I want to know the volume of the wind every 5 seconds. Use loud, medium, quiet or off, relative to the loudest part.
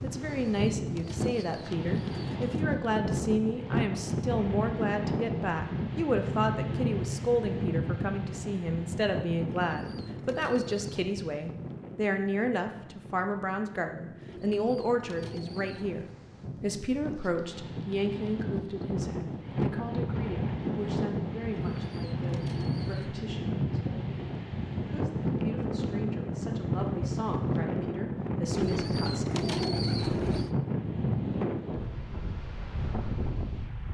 loud, loud, quiet, medium, loud, loud, loud.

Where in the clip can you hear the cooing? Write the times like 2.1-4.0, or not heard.
0.1-2.8, 9.4-11.1, 14.2-16.1, 21.6-23.2, 28.5-30.6.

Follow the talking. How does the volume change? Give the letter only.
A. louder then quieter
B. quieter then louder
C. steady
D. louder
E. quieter
E.